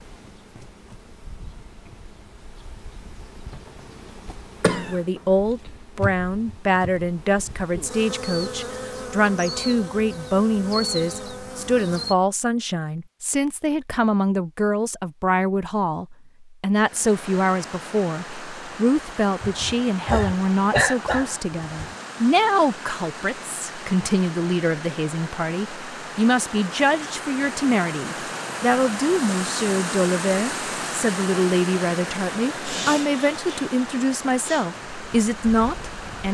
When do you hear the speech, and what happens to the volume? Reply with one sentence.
The speech can be heard from 4.8 to 36.2 s, at a steady volume.